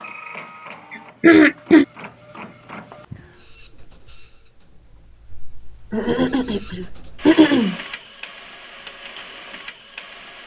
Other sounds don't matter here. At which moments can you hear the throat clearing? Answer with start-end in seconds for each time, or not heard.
0.9-1.9, 5.9-7.8.